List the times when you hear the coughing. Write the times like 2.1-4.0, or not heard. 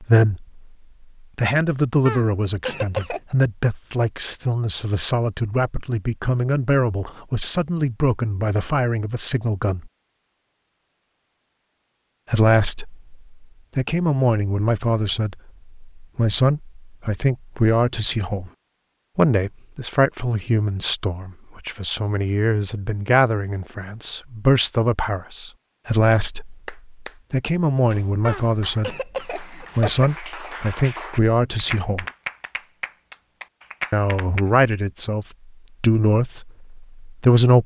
2.0-3.2, 28.2-30.1.